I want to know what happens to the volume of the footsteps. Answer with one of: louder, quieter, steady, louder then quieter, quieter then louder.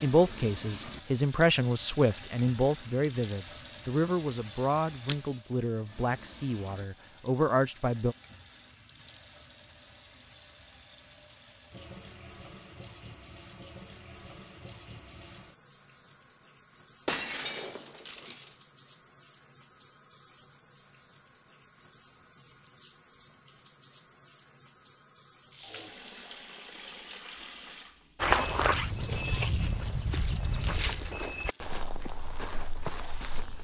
quieter.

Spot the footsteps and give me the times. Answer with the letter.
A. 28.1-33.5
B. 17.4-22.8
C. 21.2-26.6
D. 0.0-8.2
A.